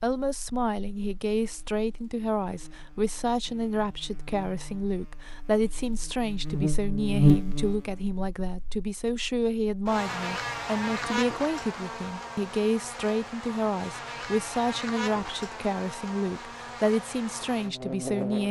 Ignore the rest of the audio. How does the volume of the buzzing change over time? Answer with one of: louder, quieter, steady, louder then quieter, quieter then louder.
louder then quieter.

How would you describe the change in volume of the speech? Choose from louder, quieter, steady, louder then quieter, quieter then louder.
steady.